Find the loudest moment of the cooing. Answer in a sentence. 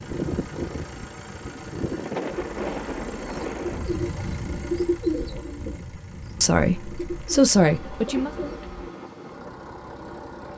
The volume of the cooing peaks at 5 seconds.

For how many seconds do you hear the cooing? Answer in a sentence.
You can hear the cooing for 7 seconds altogether.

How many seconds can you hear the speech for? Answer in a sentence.
The speech can be heard for 2 seconds in total.